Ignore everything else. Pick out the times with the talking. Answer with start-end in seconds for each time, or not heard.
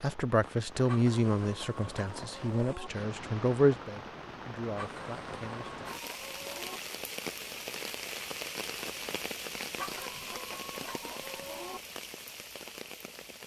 0.0-5.8.